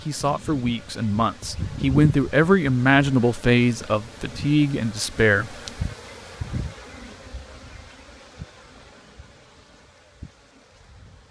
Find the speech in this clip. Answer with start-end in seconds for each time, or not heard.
0.0-5.5.